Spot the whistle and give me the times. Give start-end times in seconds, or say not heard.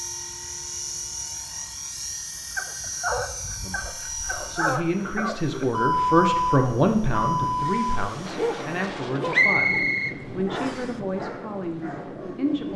9.3-10.9.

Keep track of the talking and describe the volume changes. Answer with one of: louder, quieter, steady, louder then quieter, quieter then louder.
louder then quieter.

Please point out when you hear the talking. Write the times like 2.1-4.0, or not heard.
3.6-12.7.